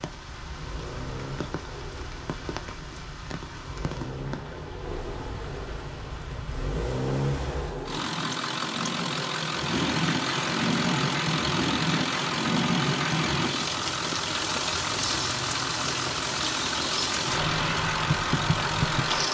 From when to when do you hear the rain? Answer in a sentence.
The rain can be heard from 0.0 to 19.2 s.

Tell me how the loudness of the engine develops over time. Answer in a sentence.
The loudness of the engine goes up.